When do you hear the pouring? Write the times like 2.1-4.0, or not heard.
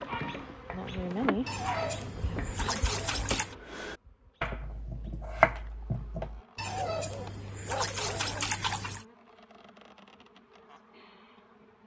1.4-3.5, 6.5-9.1.